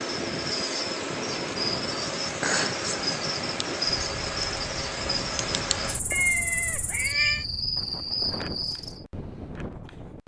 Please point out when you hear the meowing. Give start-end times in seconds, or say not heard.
6.1-7.5.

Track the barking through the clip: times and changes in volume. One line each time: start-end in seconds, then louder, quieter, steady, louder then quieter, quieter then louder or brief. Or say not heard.
not heard.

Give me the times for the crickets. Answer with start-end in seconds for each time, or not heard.
0.0-9.1.